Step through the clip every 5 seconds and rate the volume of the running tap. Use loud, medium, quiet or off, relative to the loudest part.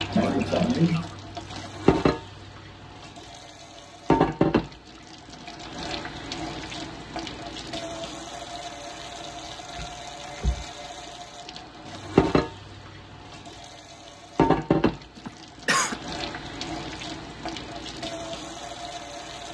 loud, medium, loud, medium.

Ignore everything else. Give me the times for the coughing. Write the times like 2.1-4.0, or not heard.
0.1-1.1, 15.2-15.9.